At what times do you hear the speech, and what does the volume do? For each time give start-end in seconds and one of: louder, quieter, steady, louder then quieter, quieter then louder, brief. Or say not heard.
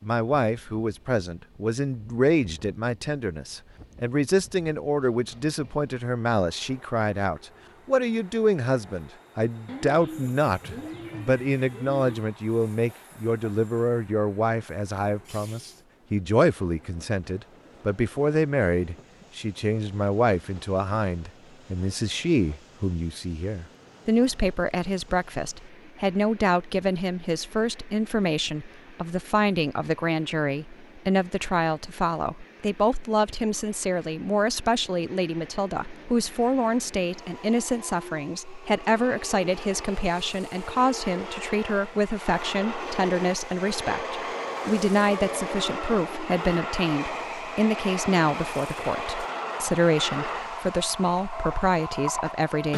0.0-52.7 steady.